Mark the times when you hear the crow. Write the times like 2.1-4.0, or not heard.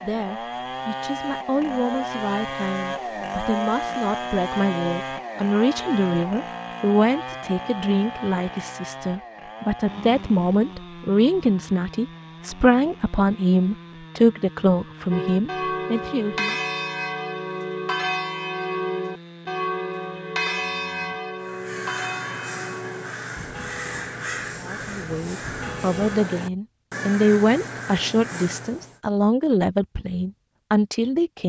21.4-29.0.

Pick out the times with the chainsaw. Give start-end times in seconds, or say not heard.
0.0-21.6.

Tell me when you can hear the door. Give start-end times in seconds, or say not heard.
not heard.